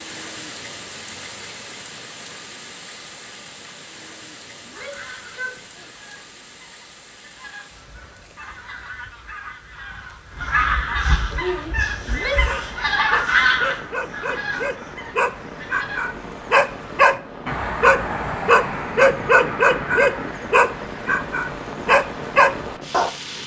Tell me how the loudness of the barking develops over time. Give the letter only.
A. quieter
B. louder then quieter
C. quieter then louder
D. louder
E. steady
D.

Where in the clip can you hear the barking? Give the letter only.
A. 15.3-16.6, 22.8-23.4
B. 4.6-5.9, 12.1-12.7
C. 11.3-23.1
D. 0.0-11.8
C.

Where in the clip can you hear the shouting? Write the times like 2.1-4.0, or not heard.
4.6-5.9, 12.1-12.7.